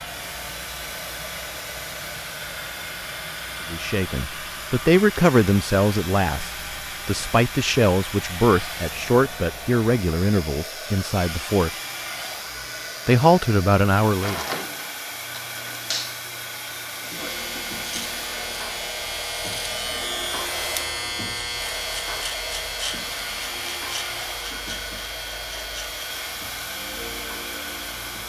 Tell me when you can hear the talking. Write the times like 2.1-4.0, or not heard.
3.7-11.7, 13.1-14.4.